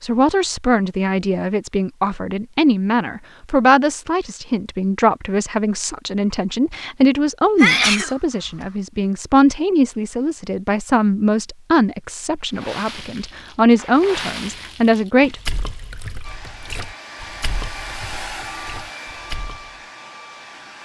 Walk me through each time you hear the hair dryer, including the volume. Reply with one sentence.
You can hear the hair dryer from 16.2 to 20.8 s, getting louder then quieter.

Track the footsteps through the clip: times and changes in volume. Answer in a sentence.
The footsteps can't be heard in this clip.